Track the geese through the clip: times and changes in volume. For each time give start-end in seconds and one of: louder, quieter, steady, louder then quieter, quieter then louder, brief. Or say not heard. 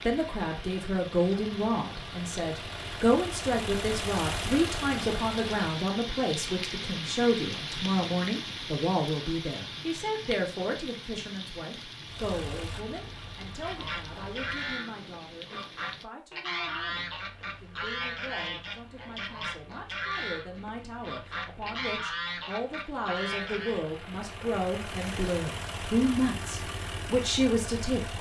13.6-23.9 steady.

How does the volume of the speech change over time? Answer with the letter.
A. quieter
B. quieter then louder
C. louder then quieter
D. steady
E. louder
B.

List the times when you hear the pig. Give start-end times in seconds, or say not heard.
not heard.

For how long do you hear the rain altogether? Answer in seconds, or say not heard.
16 s.